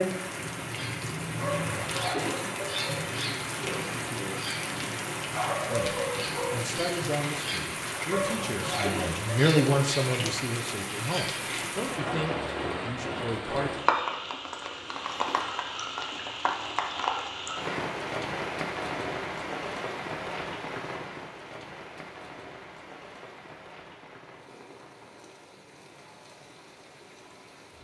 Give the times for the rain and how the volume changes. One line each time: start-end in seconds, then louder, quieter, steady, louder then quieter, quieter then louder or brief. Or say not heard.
0.0-27.7 quieter.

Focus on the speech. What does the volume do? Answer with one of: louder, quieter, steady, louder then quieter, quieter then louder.
louder then quieter.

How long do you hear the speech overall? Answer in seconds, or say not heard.
8 s.